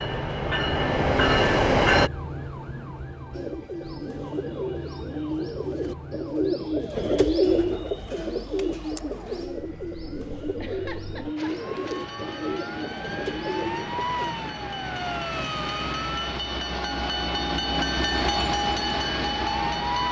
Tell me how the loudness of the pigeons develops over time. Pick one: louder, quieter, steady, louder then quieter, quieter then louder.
louder then quieter.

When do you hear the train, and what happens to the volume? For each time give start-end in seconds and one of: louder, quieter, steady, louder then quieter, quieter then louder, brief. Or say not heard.
0.0-2.1 brief
11.3-20.0 louder.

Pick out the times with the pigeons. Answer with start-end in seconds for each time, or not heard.
3.3-14.3.